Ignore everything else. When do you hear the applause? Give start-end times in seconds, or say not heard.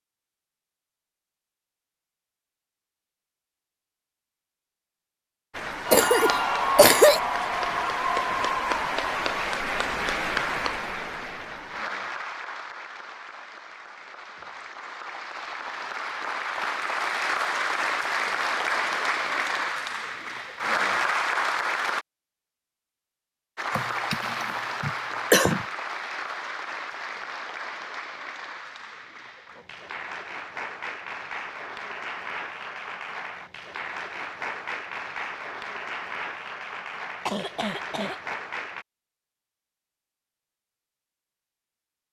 5.5-22.1, 23.6-38.9.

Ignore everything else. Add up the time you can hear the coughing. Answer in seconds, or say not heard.
4 s.